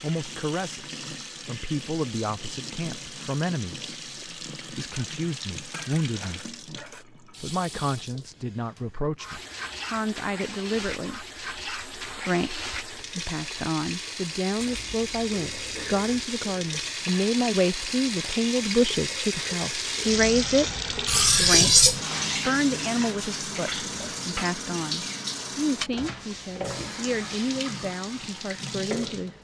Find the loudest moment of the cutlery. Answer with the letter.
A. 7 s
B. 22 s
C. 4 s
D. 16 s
B.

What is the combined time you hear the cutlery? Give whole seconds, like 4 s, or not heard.
5 s.